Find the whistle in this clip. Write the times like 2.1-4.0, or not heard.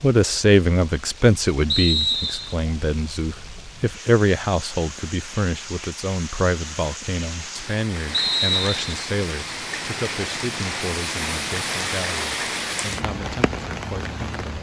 1.6-2.5, 8.1-9.0.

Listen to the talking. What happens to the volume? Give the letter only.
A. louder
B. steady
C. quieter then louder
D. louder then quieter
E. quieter
E.